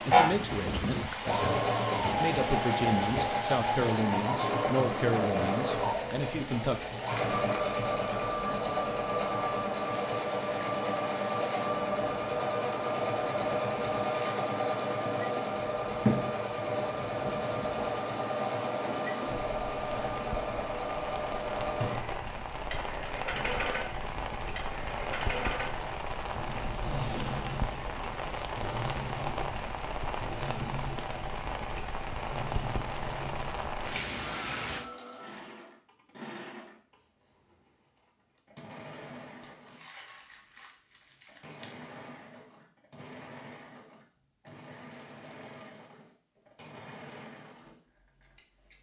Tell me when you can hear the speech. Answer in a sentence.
You can hear the speech from 0.0 to 6.8 s.